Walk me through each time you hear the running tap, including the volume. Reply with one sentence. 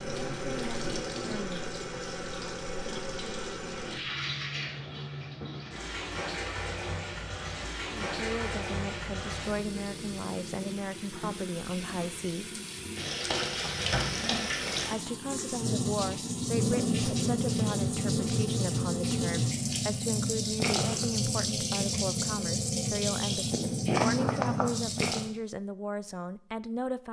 The running tap can be heard from 0.0 to 25.3 s, getting louder.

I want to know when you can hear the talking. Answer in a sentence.
The talking can be heard from 0.1 to 1.6 s, from 8.1 to 12.6 s and from 14.9 to 27.0 s.